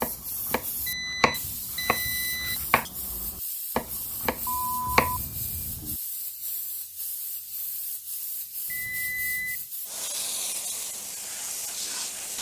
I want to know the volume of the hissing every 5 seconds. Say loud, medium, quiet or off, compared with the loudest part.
medium, medium, loud.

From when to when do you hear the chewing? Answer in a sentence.
The chewing can't be heard in this clip.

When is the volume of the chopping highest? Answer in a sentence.
The volume of the chopping peaks at 5 seconds.